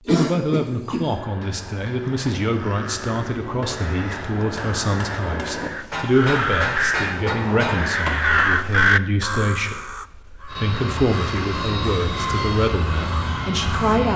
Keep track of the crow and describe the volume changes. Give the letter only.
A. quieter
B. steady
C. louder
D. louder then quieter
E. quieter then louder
D.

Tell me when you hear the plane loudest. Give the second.
12 s.